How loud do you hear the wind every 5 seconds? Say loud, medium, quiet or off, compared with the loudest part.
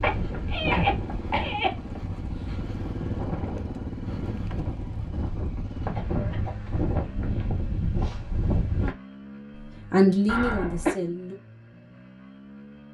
medium, loud, off.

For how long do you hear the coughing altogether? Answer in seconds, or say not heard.
3 s.